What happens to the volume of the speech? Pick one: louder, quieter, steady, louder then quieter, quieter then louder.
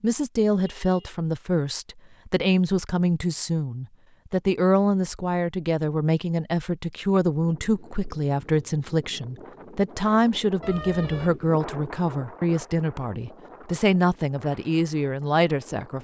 steady.